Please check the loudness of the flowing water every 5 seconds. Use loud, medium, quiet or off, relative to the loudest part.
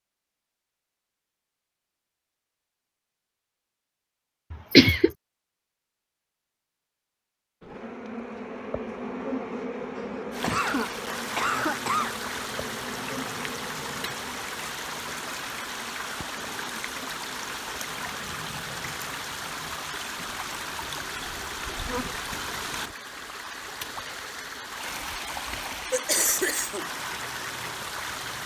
off, off, loud, loud, loud, loud.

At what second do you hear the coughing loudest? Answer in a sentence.
The volume of the coughing peaks at 5 seconds.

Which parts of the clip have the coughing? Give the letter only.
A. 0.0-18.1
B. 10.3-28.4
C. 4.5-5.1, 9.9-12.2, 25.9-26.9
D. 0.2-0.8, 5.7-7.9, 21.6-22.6
C.